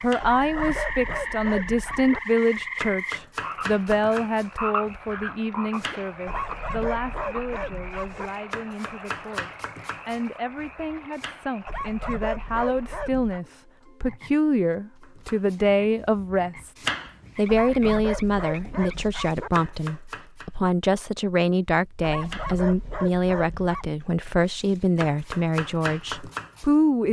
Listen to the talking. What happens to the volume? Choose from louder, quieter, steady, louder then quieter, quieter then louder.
quieter then louder.